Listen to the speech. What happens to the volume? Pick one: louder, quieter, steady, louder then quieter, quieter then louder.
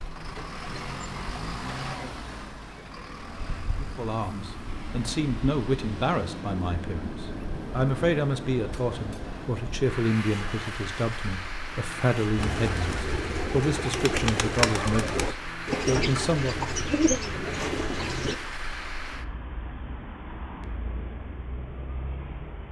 steady.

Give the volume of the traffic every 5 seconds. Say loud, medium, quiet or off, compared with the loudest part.
loud, loud, loud, loud, medium.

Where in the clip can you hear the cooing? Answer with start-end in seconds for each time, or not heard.
12.3-18.4.